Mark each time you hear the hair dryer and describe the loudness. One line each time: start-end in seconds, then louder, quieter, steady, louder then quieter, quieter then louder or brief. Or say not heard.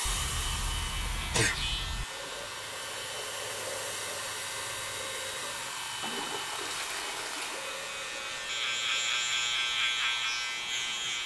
0.0-11.2 quieter.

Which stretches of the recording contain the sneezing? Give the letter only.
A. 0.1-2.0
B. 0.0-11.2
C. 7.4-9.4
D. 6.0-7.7
A.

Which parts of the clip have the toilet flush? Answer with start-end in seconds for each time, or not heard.
6.0-7.7.